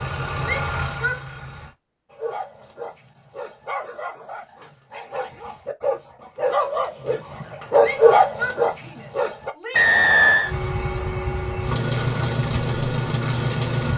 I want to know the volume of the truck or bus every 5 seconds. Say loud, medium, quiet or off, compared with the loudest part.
medium, off, loud.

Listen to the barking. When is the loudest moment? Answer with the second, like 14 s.
8 s.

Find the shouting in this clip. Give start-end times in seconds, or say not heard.
0.4-1.2, 7.8-10.0.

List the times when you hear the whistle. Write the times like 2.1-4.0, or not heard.
9.8-10.6.